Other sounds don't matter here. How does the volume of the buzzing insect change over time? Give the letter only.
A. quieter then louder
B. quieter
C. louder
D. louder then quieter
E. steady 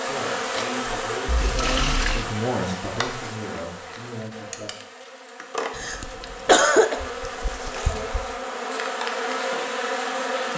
A.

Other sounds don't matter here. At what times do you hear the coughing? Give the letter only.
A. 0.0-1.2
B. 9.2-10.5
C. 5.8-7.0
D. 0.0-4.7
C.